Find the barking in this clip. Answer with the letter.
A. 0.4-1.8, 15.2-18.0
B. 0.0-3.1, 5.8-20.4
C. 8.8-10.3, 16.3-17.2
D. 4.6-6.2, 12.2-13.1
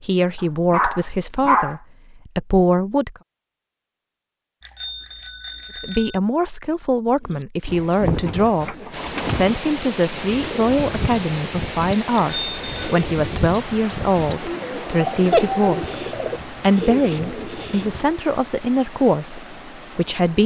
A.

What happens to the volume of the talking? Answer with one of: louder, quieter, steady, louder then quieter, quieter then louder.
steady.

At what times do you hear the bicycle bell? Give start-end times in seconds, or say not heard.
4.6-6.2, 12.2-13.1.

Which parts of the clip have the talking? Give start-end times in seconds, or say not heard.
0.0-3.1, 5.8-20.4.